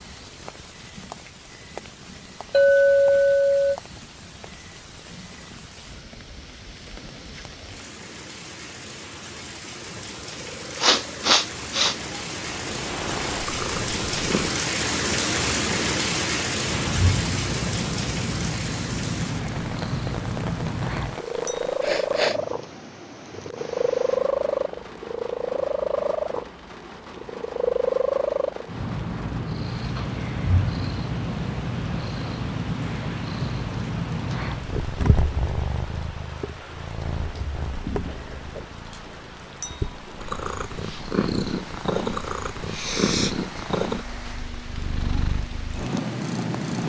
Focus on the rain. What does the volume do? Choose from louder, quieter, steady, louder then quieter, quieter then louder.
louder then quieter.